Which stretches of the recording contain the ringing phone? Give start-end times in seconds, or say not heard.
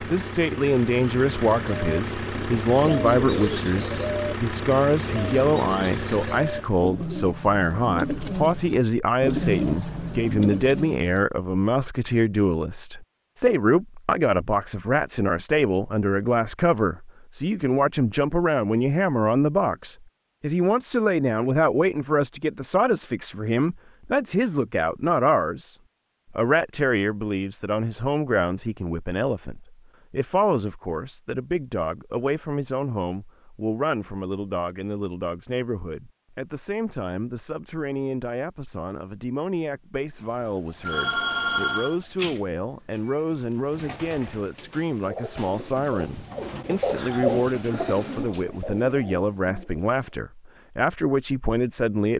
40.9-42.0.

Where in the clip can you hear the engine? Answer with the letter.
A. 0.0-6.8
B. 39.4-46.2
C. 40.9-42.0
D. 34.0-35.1
A.